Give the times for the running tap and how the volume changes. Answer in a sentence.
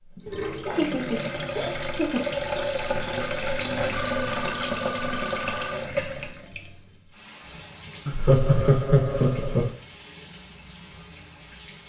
You can hear the running tap from 0.0 to 11.8 s, getting quieter.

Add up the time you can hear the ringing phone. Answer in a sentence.
You can hear the ringing phone for 2 seconds altogether.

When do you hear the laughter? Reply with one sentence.
You can hear the laughter from 0.2 to 2.2 s and from 8.1 to 9.7 s.